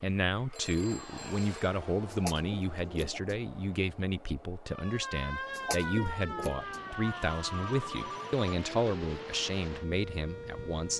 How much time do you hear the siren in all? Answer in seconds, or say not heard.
6 s.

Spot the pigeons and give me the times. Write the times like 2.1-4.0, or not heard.
2.1-3.4, 5.5-7.0.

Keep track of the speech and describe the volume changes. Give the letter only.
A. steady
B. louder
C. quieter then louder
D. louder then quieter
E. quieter
A.